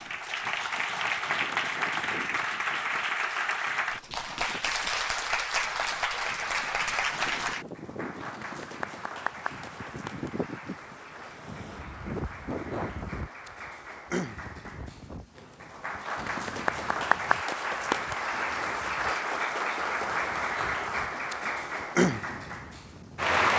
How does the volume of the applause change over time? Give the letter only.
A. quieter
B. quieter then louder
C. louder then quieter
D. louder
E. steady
B.